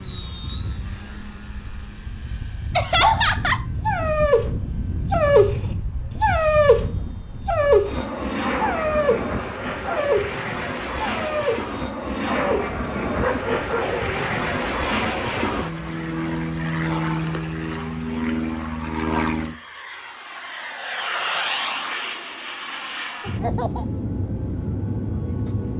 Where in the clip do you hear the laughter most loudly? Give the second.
3 s.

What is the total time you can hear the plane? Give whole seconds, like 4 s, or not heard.
26 s.